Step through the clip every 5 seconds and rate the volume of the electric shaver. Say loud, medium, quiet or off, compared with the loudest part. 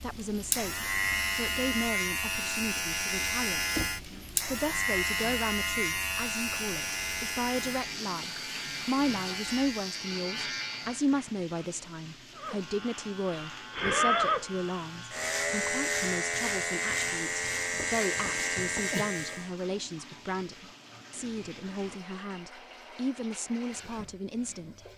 loud, loud, loud, loud, off.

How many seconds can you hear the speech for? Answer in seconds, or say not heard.
24 s.